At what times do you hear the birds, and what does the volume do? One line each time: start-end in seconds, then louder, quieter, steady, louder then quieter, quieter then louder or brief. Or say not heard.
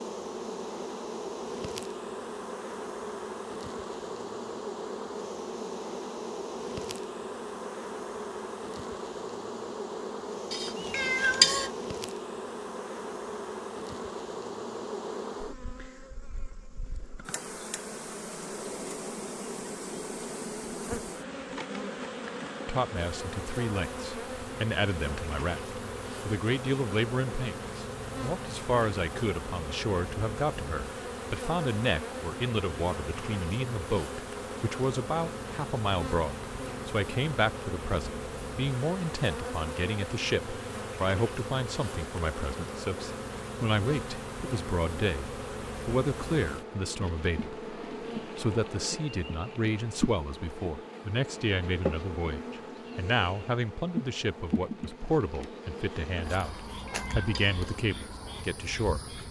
not heard.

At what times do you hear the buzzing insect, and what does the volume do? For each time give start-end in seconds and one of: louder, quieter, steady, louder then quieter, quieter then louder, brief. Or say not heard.
0.0-59.2 steady.